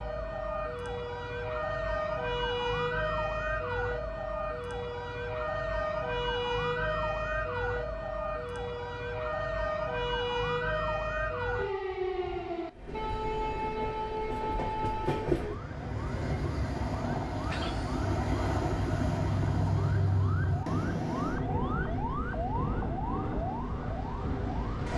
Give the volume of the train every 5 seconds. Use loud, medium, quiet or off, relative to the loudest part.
off, off, medium, loud, loud.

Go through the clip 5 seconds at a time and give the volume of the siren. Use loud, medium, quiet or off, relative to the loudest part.
loud, loud, loud, medium, medium.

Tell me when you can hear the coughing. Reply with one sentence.
You can hear the coughing from 17.4 to 18.0 s.